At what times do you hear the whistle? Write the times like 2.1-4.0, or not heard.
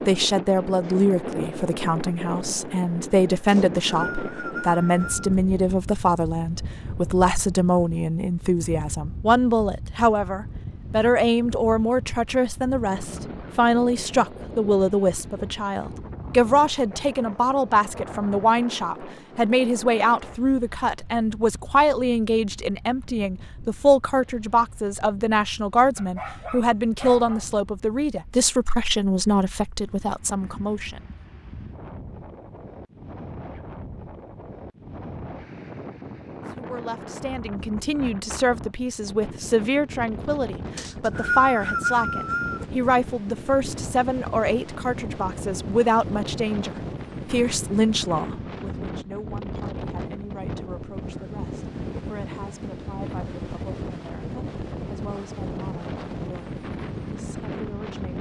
3.5-5.3, 40.8-42.6.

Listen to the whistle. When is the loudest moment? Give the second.
41 s.